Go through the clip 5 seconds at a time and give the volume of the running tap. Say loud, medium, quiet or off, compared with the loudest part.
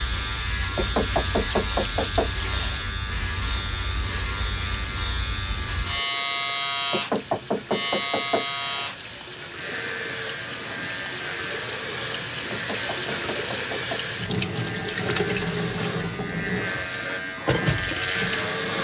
medium, medium, loud, loud.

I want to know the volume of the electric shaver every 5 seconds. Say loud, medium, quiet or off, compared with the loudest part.
loud, loud, medium, loud.